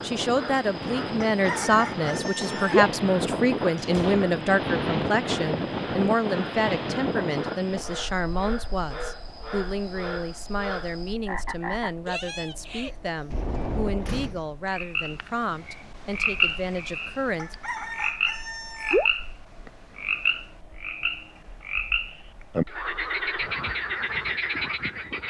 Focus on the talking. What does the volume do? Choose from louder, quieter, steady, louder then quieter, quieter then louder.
quieter.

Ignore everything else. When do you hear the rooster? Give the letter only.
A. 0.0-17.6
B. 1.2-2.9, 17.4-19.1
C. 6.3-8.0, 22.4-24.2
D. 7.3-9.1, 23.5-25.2
B.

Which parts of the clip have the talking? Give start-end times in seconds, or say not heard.
0.0-17.6.